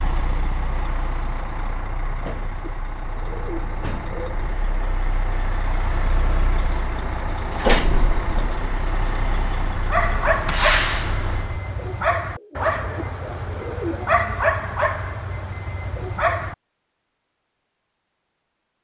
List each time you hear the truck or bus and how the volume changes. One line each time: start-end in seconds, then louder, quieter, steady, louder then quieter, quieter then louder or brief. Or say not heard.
0.0-11.6 louder.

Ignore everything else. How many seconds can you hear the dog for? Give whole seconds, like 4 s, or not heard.
7 s.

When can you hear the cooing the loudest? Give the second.
14 s.